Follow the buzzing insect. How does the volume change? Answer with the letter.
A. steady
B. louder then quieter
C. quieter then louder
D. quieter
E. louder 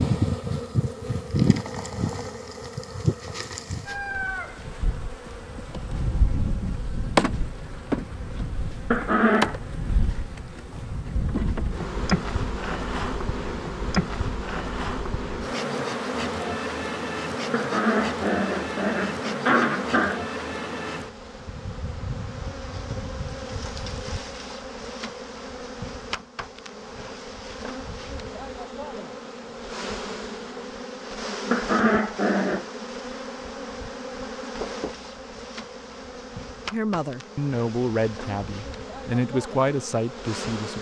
D.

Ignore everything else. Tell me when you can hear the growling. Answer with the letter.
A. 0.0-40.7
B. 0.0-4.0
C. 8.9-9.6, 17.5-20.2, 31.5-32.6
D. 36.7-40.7
C.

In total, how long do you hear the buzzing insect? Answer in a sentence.
You can hear the buzzing insect for 41 seconds altogether.